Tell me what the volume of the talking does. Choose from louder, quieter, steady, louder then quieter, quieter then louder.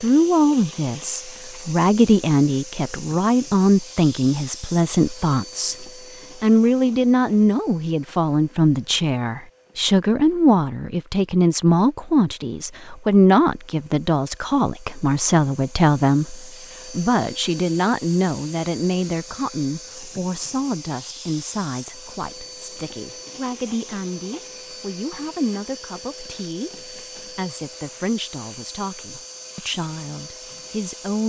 quieter.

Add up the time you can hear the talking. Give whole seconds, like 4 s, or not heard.
31 s.